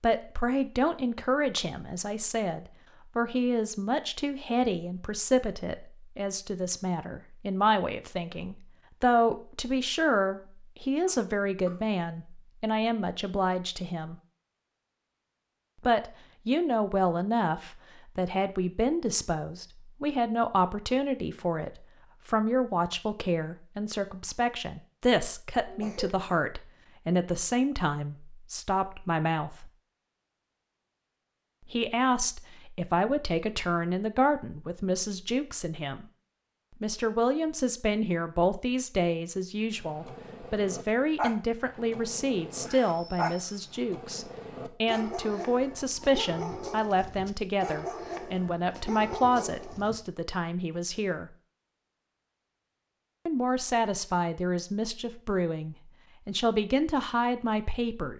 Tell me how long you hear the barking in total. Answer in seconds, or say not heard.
10 s.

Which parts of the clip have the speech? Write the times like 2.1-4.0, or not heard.
0.0-14.2, 15.8-29.7, 31.6-36.0, 36.8-51.3, 53.2-58.1.